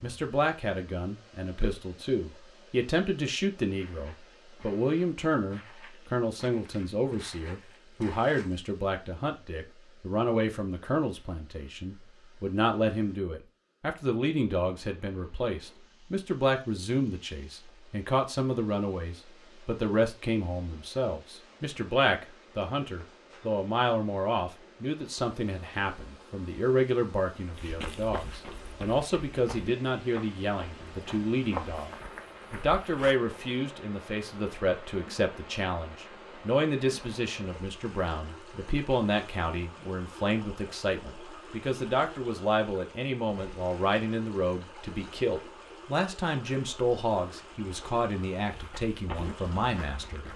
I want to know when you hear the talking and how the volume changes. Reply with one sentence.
You can hear the talking from 0.0 to 31.9 s, at a steady volume; and from 32.5 to 50.2 s, at a steady volume.